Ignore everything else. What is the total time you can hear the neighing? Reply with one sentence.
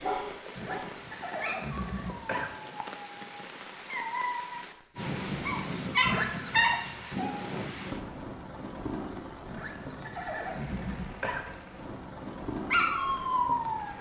You can hear the neighing for 5 seconds altogether.